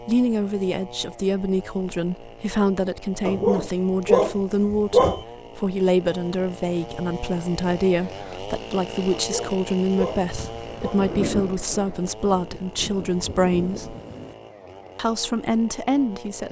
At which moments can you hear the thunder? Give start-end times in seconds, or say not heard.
10.2-14.3.